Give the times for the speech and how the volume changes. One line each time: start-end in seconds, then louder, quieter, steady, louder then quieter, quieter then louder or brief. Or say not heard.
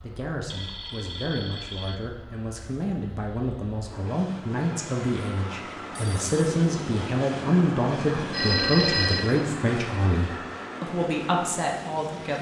0.0-12.3 louder.